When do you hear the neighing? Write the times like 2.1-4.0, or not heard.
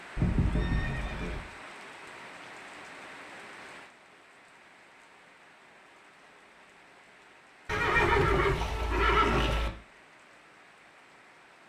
0.1-1.4, 7.7-9.7.